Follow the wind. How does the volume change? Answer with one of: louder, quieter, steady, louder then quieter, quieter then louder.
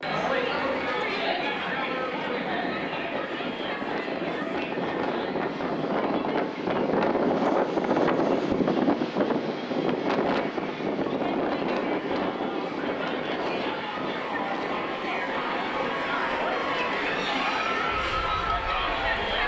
louder then quieter.